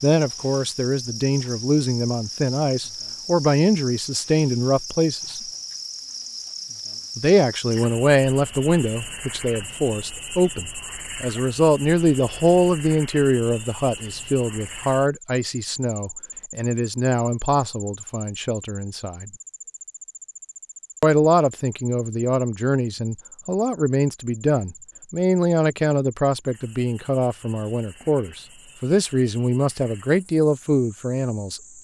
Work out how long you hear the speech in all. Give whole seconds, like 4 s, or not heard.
28 s.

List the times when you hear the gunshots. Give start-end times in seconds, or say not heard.
not heard.